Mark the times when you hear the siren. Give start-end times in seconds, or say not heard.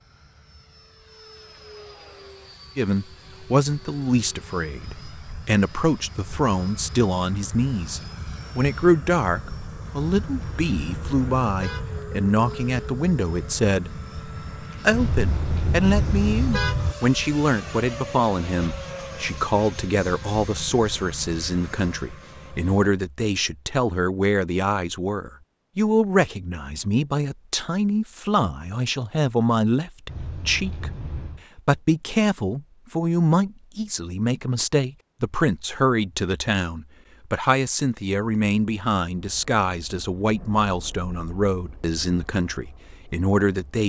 not heard.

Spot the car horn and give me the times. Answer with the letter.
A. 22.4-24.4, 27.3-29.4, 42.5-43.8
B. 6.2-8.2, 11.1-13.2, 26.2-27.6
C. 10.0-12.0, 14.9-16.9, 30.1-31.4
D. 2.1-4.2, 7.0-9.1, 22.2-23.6
C.